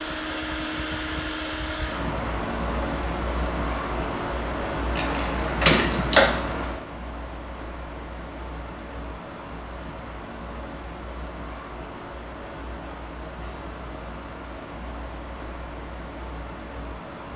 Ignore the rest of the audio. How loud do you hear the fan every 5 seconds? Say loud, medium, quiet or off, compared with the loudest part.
loud, loud, medium, medium.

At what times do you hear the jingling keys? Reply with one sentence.
The jingling keys can be heard from 5.0 to 6.3 s.